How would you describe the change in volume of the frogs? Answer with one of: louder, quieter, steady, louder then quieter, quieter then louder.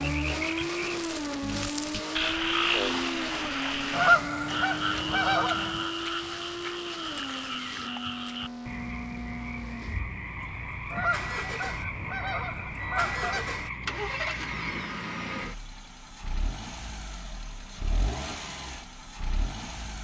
quieter.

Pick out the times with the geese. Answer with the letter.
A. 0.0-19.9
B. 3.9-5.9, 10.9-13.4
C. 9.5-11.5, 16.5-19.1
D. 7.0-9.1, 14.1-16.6
B.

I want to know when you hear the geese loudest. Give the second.
4 s.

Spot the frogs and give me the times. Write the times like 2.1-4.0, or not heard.
0.0-15.1.